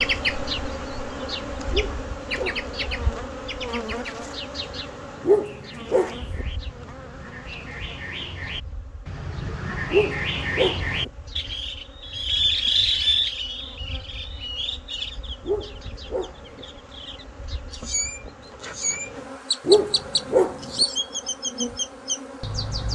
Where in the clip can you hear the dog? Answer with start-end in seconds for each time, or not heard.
1.7-2.9, 5.2-6.5, 9.9-11.1, 15.4-16.6, 19.6-20.9.